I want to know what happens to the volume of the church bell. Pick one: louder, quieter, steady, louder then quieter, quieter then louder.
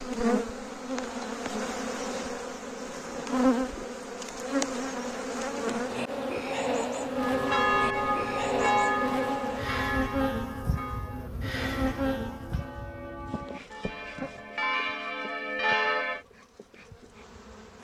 quieter then louder.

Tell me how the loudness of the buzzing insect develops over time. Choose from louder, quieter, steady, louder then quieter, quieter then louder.
quieter.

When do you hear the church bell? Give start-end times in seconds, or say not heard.
7.2-16.2.